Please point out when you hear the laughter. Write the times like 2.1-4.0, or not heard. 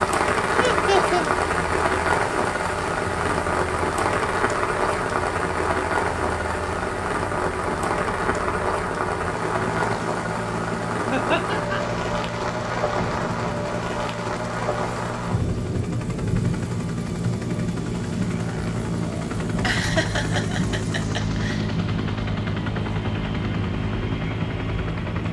0.6-1.2, 11.1-11.8, 19.6-21.6.